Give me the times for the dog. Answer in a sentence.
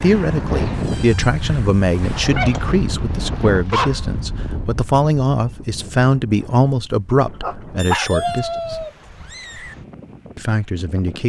You can hear the dog from 2.4 to 4.0 s and from 7.4 to 8.1 s.